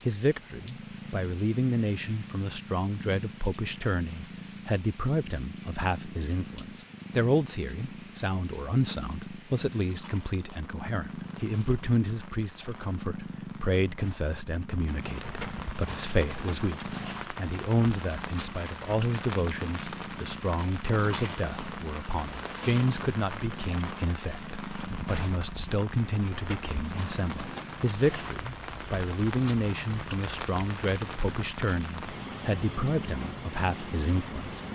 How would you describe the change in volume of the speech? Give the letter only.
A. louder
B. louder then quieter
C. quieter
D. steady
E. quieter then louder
D.